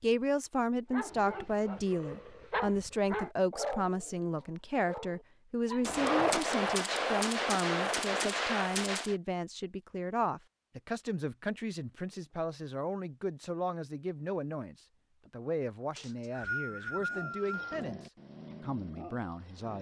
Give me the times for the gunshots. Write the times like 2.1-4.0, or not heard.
5.8-9.2.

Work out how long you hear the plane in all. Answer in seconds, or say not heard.
not heard.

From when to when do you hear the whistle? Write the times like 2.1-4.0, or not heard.
15.9-17.9.